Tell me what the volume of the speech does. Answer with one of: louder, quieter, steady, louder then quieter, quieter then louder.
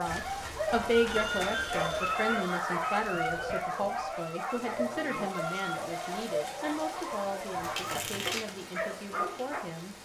quieter.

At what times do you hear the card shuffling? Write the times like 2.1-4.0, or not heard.
0.1-1.9, 7.2-8.6.